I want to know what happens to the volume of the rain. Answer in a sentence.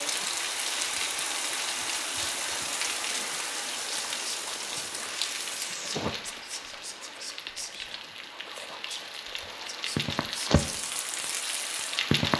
The loudness of the rain goes down, then up.